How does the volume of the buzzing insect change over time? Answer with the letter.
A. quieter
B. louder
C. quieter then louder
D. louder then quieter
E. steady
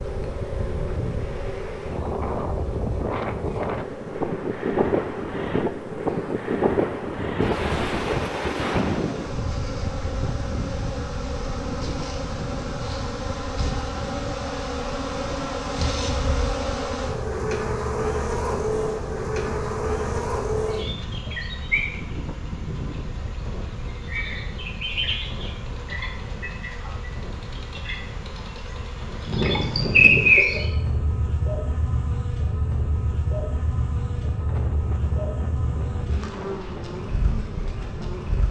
D.